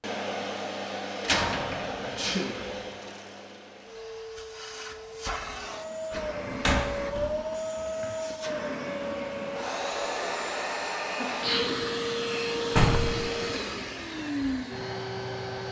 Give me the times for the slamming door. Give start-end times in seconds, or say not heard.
1.2-2.8, 6.1-7.3, 12.7-13.2.